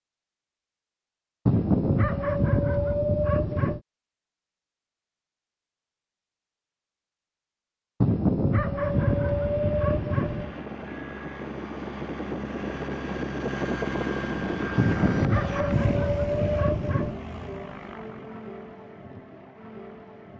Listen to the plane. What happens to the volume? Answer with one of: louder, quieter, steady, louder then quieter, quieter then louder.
louder then quieter.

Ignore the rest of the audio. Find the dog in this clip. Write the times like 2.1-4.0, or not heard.
1.4-3.8, 8.0-10.6, 14.8-17.2.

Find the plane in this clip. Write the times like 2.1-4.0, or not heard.
8.8-20.3.